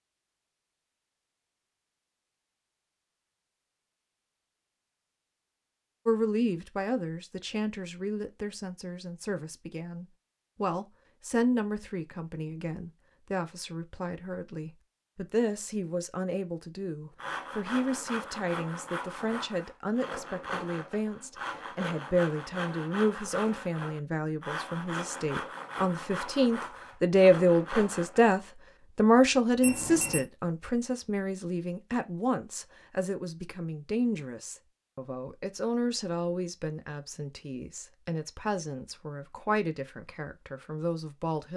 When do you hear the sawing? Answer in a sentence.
You can hear the sawing from 17.1 to 28.3 s.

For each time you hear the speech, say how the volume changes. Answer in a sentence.
You can hear the speech from 6.0 to 41.5 s, getting louder then quieter.